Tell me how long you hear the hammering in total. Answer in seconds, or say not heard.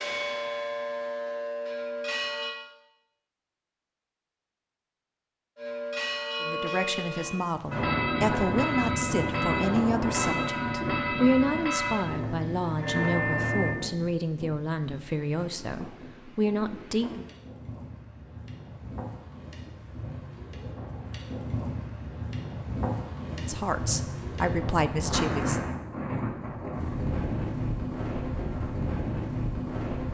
not heard.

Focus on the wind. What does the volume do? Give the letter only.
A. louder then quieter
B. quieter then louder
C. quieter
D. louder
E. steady
B.